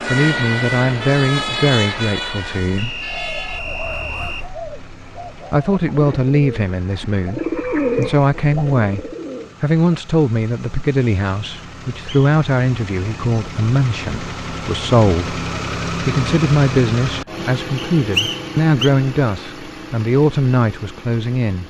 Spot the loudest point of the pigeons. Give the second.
8 s.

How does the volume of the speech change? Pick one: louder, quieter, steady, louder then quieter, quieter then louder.
steady.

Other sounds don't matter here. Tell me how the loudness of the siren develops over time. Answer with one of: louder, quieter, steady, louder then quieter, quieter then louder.
quieter.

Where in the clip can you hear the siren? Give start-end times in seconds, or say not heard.
0.0-4.5.